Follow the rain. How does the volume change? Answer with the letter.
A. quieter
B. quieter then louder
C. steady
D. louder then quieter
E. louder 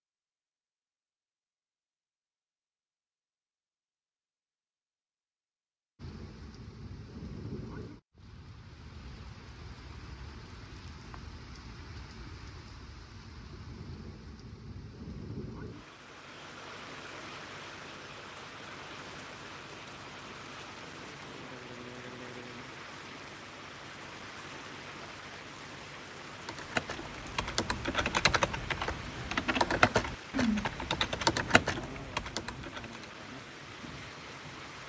C.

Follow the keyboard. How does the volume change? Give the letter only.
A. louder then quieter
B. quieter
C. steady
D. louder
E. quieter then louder
A.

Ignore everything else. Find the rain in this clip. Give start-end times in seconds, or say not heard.
6.0-34.8.